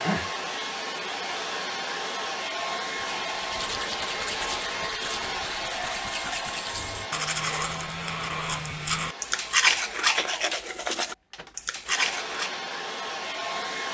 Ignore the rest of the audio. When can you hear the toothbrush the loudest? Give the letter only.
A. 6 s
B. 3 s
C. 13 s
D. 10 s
D.